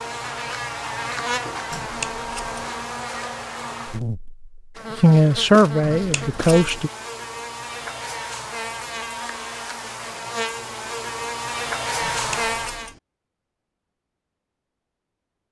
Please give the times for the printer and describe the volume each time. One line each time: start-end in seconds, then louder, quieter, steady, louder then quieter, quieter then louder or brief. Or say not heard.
not heard.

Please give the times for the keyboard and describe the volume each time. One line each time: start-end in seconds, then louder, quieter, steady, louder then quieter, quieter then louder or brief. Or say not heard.
not heard.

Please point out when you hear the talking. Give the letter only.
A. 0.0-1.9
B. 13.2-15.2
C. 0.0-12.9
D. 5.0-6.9
D.